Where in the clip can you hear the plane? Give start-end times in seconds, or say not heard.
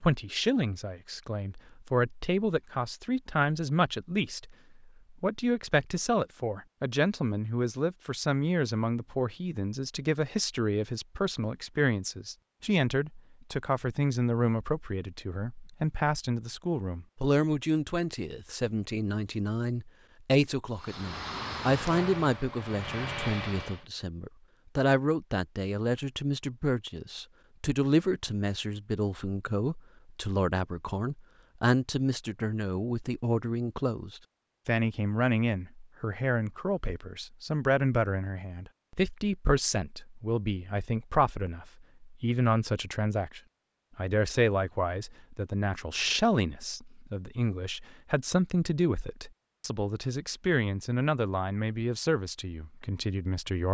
20.8-23.9.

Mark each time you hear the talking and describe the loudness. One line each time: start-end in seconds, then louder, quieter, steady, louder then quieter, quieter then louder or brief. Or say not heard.
0.0-53.6 steady.